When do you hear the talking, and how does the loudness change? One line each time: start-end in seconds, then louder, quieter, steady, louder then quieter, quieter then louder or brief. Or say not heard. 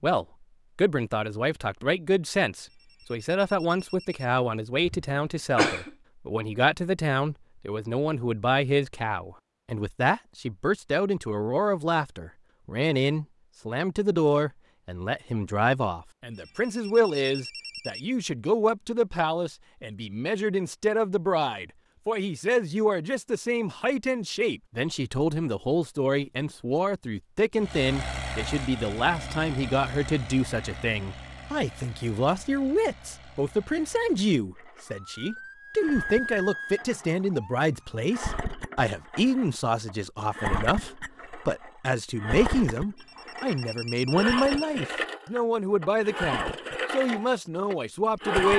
0.0-48.5 steady.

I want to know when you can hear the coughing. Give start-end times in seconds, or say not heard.
4.8-5.9.